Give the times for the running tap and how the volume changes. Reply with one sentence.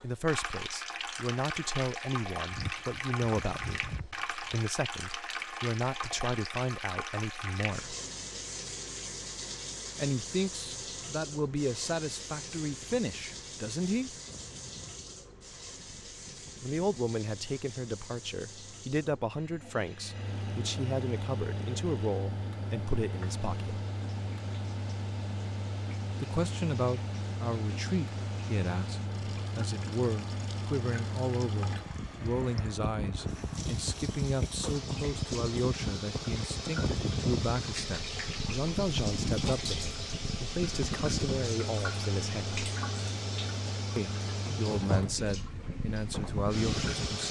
The running tap can be heard from 0.0 to 47.2 s, getting quieter then louder.